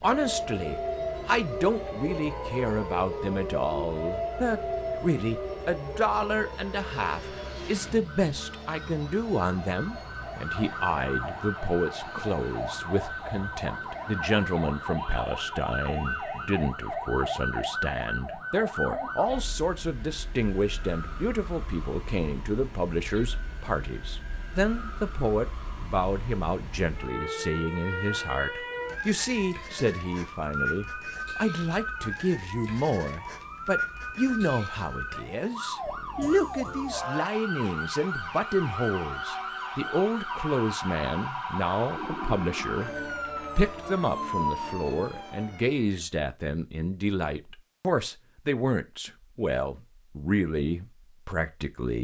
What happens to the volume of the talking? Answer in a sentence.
The volume of the talking stays about the same.